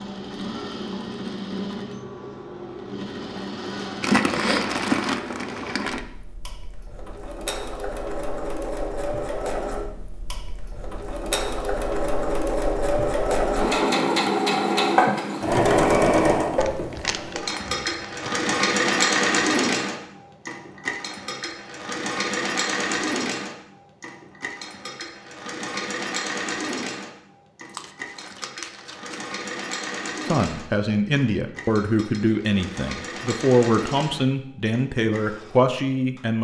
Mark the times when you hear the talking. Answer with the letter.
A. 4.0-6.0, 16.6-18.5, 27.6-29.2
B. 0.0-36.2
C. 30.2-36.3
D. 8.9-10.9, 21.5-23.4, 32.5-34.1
C.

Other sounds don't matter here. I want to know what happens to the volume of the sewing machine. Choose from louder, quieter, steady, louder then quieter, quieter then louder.
louder then quieter.